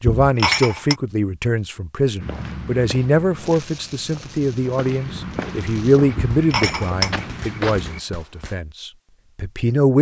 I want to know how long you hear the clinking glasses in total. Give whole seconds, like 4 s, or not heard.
2 s.